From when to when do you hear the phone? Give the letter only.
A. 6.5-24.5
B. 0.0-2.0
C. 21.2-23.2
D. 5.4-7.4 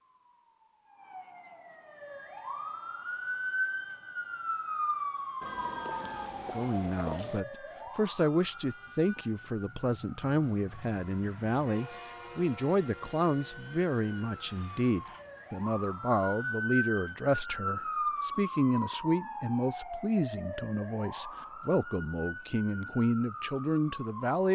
D.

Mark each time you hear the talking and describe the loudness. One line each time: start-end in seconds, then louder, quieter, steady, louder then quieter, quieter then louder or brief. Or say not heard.
6.5-24.5 steady.